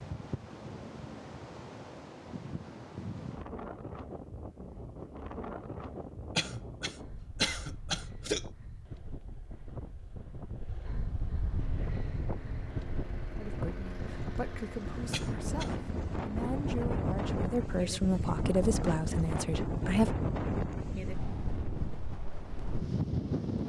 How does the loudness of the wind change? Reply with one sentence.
The loudness of the wind goes up.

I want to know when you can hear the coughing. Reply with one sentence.
You can hear the coughing from 6.3 to 8.4 s and from 15.1 to 15.8 s.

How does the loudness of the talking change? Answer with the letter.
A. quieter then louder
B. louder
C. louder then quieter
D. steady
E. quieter
B.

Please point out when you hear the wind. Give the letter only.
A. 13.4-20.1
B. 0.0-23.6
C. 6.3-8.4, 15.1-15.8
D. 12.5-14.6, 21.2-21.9
B.